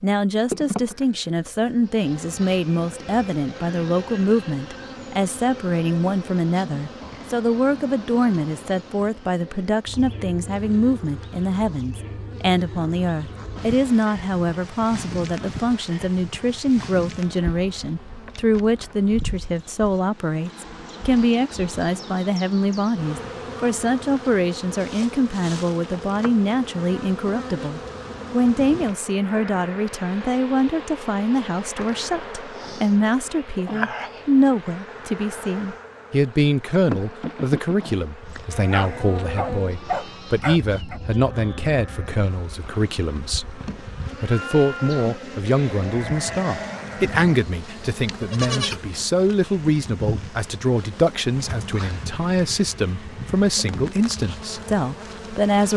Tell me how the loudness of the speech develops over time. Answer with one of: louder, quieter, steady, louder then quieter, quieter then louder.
steady.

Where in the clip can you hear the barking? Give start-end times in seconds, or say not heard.
38.2-41.0.